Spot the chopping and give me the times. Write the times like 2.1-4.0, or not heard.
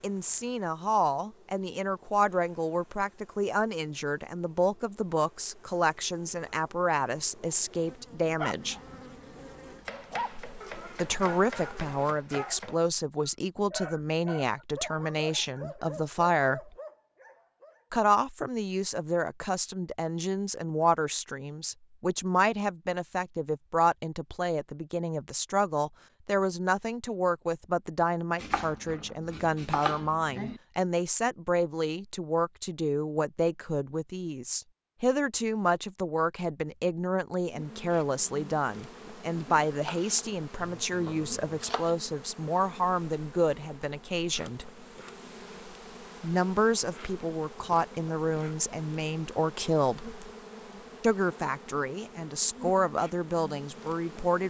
9.8-12.8, 28.4-30.6, 39.8-40.2, 41.0-41.9.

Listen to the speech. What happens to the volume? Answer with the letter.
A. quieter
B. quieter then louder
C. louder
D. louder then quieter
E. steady
E.